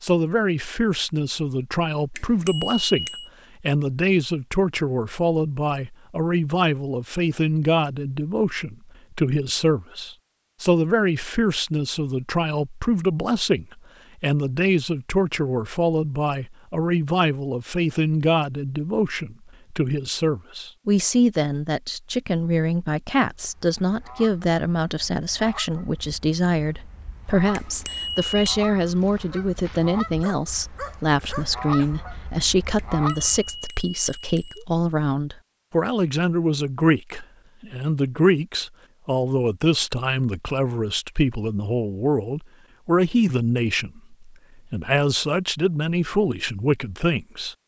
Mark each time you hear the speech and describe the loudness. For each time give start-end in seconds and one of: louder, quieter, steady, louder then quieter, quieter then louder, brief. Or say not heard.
0.0-47.5 steady.